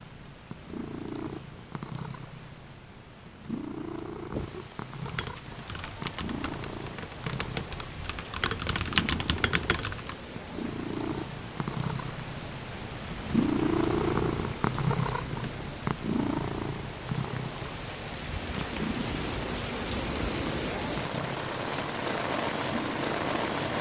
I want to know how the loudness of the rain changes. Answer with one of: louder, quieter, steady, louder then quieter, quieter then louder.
louder.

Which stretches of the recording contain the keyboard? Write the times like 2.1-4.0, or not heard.
5.0-10.2.